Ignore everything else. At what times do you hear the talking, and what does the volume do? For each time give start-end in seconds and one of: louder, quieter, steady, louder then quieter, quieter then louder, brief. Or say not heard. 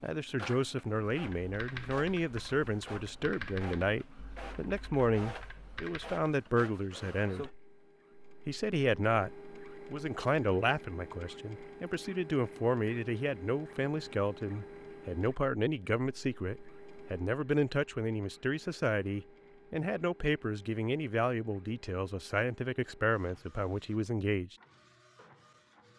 0.0-7.5 steady
8.4-9.3 brief
9.9-24.6 steady.